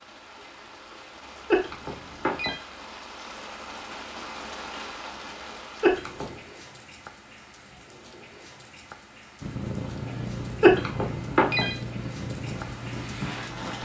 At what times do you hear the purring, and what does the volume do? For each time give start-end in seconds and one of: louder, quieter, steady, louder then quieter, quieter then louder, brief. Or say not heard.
9.4-13.7 steady.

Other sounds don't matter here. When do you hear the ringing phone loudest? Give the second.
11 s.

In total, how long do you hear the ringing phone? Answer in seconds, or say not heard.
3 s.